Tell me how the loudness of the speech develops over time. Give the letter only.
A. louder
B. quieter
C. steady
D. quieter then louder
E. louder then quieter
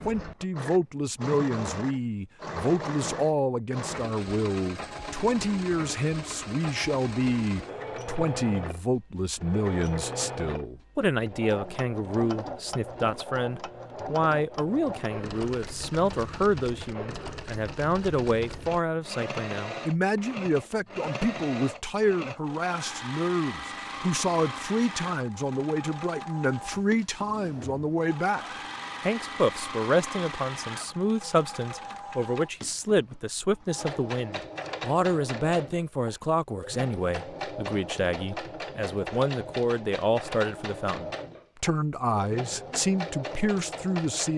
C.